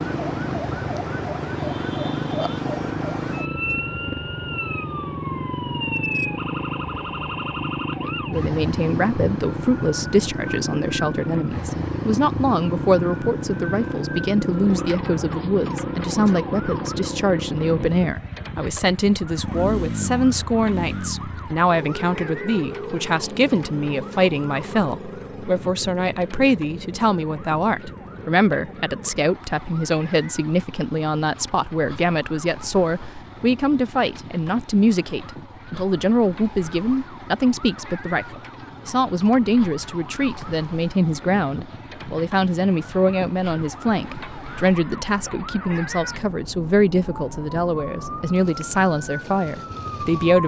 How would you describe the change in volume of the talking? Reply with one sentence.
The loudness of the talking stays about the same.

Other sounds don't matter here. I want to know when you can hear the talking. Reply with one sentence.
You can hear the talking from 8.0 to 50.4 s.